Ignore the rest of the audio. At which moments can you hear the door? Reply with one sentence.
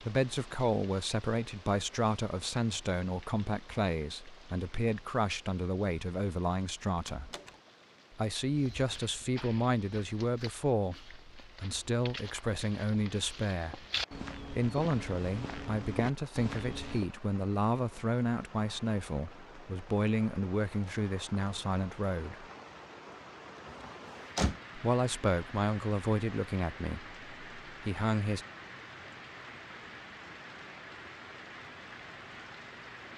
You can hear the door from 7.0 to 7.5 s and from 23.6 to 24.6 s.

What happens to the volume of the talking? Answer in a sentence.
The volume of the talking stays about the same.